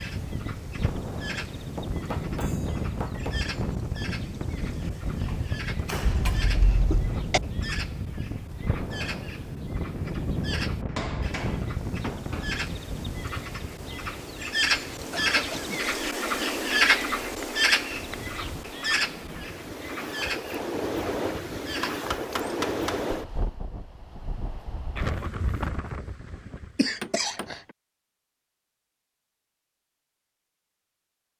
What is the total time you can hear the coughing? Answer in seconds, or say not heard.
3 s.